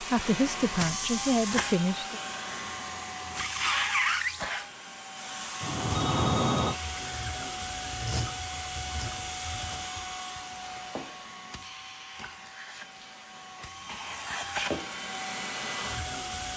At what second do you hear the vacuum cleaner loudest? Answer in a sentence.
The loudest moment of the vacuum cleaner is at 4 seconds.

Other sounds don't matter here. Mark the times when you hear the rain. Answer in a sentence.
The rain can't be heard in this clip.